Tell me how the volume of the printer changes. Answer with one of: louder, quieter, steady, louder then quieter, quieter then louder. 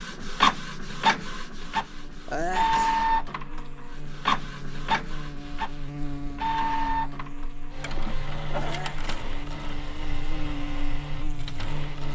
quieter.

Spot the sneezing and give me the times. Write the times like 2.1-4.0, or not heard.
2.2-3.0, 8.6-9.1.